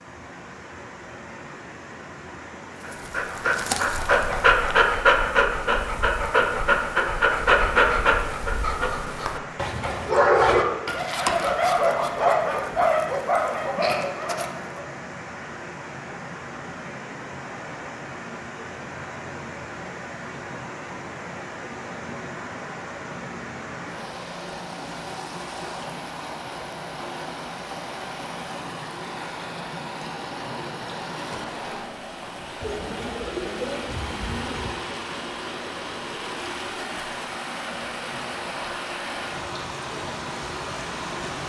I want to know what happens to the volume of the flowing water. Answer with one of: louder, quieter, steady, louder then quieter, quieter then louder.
louder.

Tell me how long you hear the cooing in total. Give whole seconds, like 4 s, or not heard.
2 s.